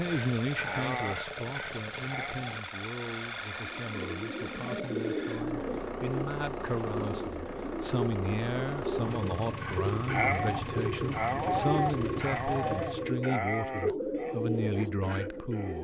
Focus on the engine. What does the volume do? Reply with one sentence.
The volume of the engine stays about the same.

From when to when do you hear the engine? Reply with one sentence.
You can hear the engine from 0.0 to 13.3 s.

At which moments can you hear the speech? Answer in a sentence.
You can hear the speech from 0.0 to 15.7 s.